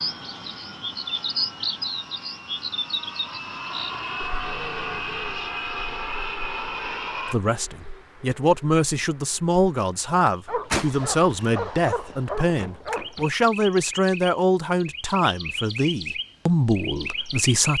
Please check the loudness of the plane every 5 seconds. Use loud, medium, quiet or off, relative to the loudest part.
medium, loud, off, off.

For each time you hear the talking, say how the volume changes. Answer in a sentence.
You can hear the talking from 7.3 to 17.7 s, at a steady volume.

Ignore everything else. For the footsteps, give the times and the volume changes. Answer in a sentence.
You can't hear the footsteps here.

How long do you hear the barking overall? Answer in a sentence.
You can hear the barking for 3 seconds altogether.